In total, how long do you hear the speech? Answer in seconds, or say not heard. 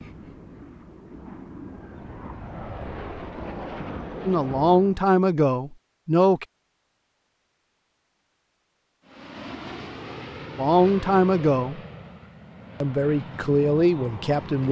5 s.